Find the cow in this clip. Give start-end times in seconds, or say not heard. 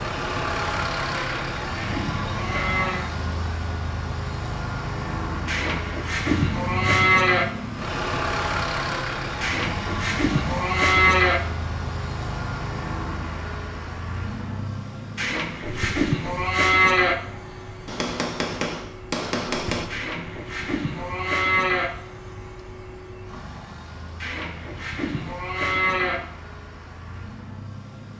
1.1-3.1, 5.5-7.5, 9.4-11.4, 15.2-17.1, 19.9-21.9, 24.2-26.2.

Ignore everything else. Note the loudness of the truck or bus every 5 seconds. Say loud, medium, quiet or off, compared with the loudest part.
loud, loud, loud, medium, quiet, quiet.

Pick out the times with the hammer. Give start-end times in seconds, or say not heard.
17.9-19.9.